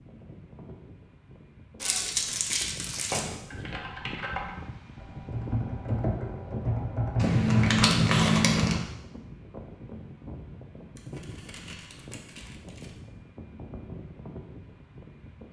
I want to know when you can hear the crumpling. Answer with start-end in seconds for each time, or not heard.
1.8-3.3, 7.2-8.8, 10.9-12.9.